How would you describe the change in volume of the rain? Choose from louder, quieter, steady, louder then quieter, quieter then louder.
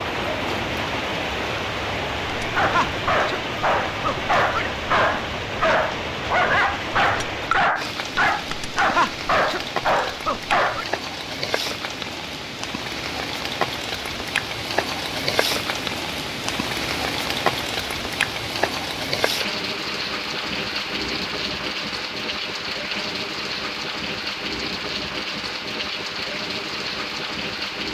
steady.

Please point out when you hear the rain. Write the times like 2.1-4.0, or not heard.
0.0-27.8.